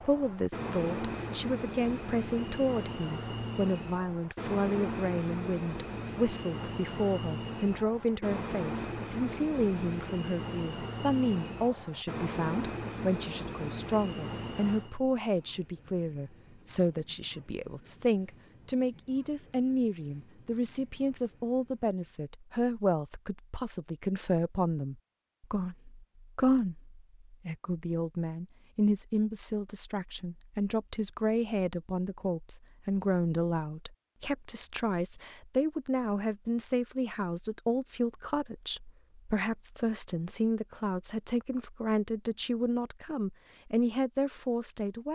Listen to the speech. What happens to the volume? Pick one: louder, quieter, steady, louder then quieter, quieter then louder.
steady.